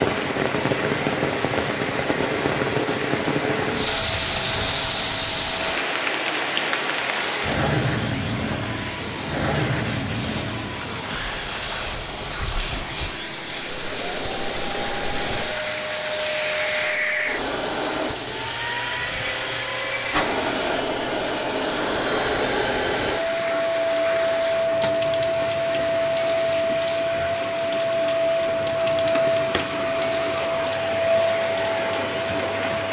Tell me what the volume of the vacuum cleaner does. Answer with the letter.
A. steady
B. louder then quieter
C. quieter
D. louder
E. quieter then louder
D.